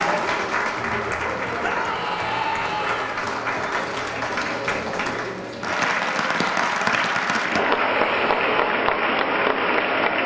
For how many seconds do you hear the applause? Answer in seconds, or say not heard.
10 s.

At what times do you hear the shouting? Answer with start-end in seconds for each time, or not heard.
1.6-3.2, 7.5-8.8.